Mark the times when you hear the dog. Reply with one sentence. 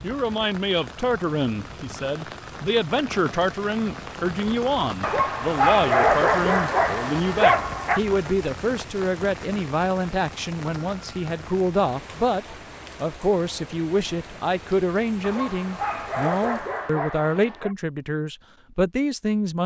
The dog can be heard from 5.0 to 8.0 s and from 15.2 to 17.8 s.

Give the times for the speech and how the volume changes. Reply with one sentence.
The speech can be heard from 0.0 to 19.6 s, at a steady volume.